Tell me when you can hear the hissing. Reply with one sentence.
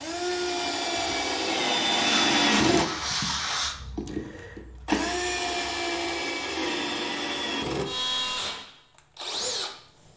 You can hear the hissing from 1.9 to 3.8 s.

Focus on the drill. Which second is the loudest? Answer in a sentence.
The loudest moment of the drill is at 2 seconds.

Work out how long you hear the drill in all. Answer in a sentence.
You can hear the drill for 10 seconds altogether.